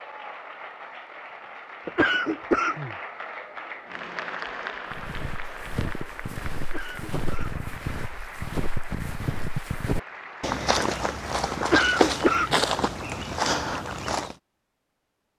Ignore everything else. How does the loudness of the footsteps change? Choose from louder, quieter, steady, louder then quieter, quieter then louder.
louder.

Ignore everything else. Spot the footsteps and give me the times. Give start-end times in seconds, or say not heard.
4.9-14.3.